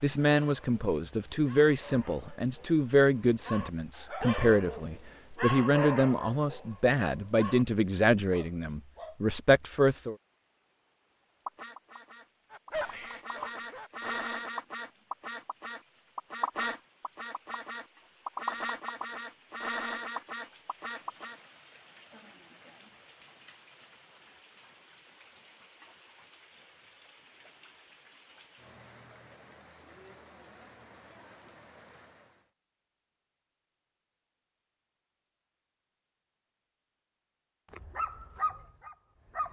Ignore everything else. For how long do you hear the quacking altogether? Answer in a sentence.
The quacking can be heard for 10 seconds in total.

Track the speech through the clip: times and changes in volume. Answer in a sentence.
You can hear the speech from 0.0 to 10.2 s, at a steady volume.